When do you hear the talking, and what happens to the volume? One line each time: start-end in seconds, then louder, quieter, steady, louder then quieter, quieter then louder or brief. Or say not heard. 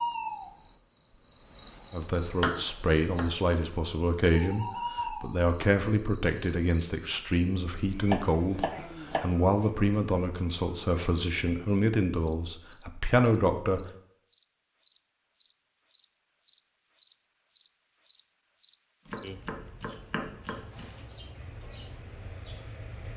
1.9-13.9 steady.